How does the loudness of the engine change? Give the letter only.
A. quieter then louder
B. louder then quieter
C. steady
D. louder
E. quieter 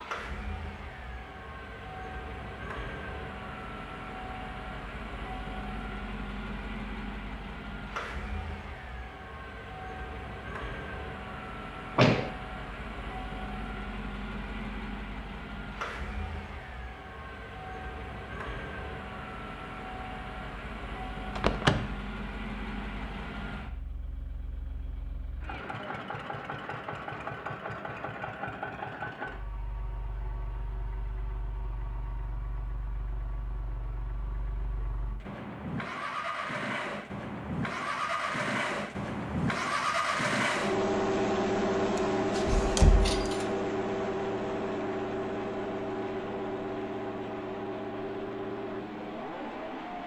D.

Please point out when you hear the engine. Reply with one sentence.
You can hear the engine from 0.0 to 50.0 s.